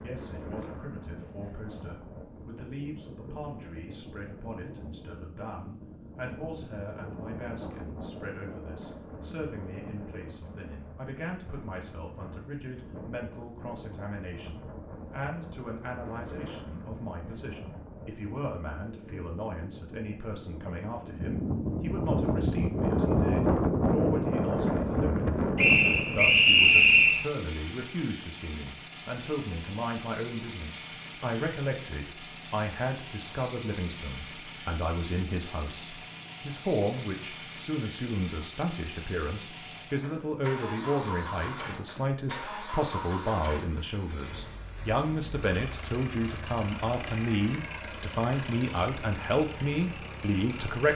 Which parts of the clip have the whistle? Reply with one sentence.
You can hear the whistle from 25.6 to 27.2 s.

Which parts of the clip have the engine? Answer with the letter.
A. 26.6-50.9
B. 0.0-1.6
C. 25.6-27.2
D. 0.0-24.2
A.